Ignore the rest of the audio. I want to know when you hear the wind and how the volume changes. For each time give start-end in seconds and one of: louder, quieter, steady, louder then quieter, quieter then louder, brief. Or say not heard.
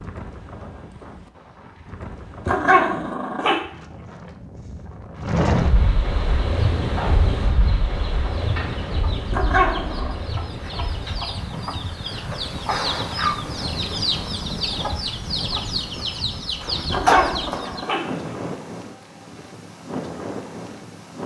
0.0-21.2 louder then quieter.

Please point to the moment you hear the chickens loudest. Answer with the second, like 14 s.
17 s.